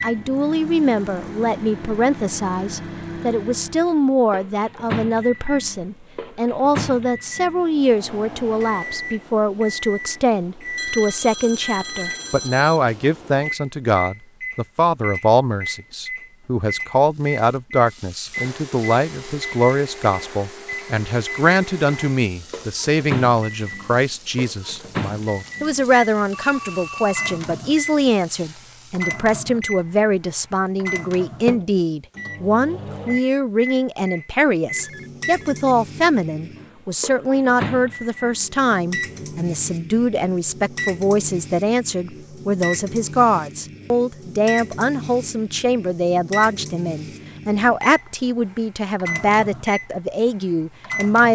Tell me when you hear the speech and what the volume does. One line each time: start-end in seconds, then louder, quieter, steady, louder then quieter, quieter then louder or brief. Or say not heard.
0.0-51.3 steady.